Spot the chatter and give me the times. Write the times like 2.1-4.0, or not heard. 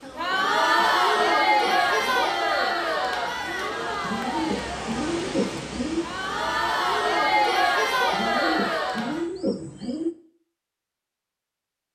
0.0-9.2.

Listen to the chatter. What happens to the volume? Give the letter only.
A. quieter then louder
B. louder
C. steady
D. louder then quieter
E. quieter
A.